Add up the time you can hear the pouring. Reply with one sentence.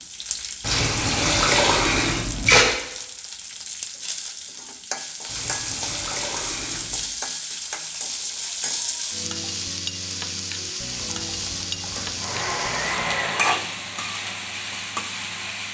The pouring can be heard for 6 seconds in total.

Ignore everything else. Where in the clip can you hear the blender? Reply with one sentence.
The blender can be heard from 12.2 to 15.6 s.